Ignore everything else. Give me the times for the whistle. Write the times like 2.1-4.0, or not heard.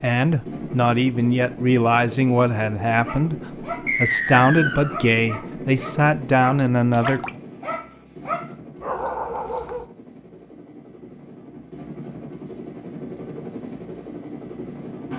3.9-5.0.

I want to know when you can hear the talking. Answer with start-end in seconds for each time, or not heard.
0.0-7.3.